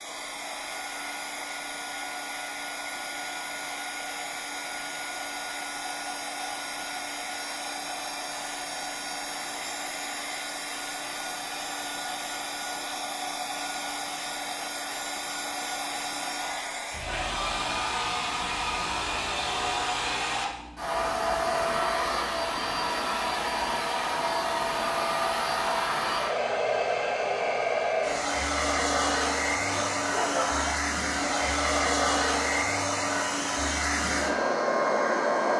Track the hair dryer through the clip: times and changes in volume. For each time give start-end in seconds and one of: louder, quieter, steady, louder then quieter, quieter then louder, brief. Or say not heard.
0.0-35.5 louder.